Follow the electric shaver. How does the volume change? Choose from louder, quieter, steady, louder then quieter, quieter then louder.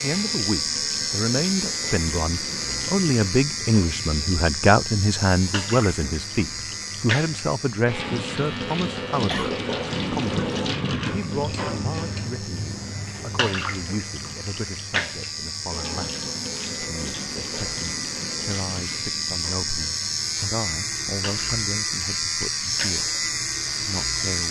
quieter then louder.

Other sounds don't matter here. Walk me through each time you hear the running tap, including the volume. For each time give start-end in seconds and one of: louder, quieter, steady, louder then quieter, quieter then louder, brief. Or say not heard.
0.0-24.4 louder then quieter.